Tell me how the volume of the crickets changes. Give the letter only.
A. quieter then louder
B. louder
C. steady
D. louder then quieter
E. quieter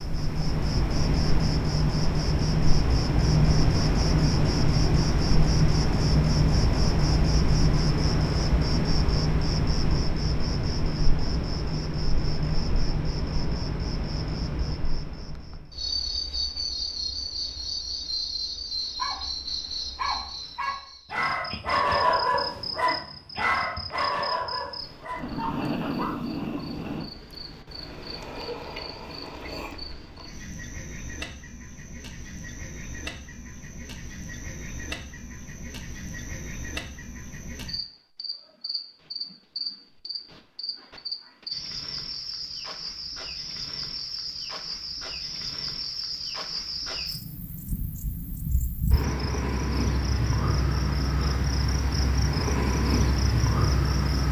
A.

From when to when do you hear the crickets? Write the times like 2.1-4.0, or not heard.
0.0-54.2.